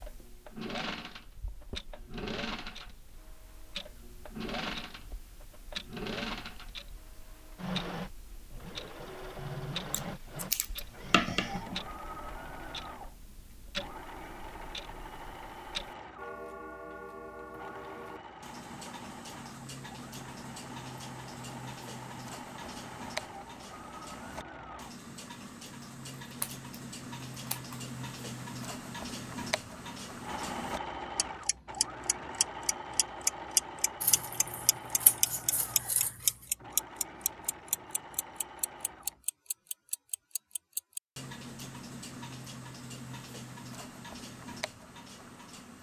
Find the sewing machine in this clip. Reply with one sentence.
You can hear the sewing machine from 0.0 to 24.9 s and from 30.2 to 39.2 s.